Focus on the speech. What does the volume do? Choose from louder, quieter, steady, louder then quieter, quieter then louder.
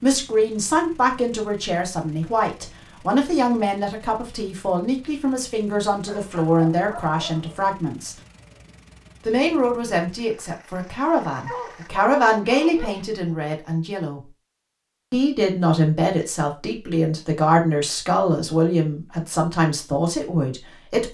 steady.